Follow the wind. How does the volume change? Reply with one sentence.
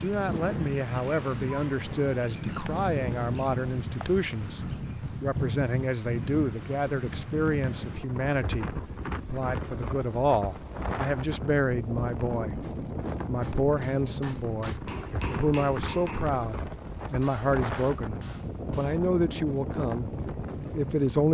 The volume of the wind stays about the same.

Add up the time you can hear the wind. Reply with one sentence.
The wind can be heard for 21 seconds in total.